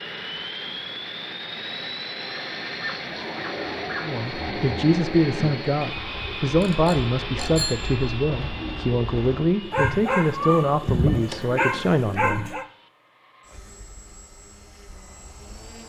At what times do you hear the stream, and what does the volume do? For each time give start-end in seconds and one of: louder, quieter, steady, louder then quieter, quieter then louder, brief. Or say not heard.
not heard.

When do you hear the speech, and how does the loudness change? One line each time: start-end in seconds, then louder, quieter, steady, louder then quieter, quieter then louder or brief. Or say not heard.
4.0-12.5 steady.